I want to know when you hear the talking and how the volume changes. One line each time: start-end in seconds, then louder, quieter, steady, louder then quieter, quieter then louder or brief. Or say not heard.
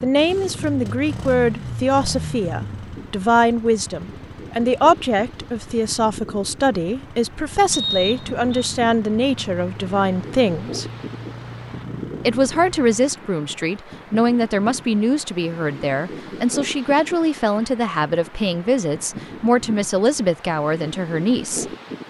0.0-10.8 steady
12.2-21.6 steady.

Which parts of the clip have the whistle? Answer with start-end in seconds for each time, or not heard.
7.7-8.7.